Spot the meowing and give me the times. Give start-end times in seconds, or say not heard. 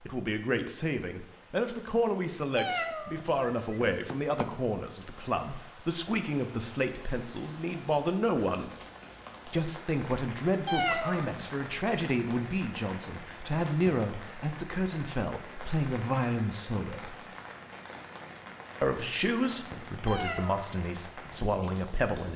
2.5-4.5, 10.7-11.3, 20.1-20.6.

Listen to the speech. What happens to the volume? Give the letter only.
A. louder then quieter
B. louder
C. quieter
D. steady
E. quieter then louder
D.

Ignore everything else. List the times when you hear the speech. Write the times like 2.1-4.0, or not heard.
0.0-8.8, 9.4-17.1, 18.8-22.3.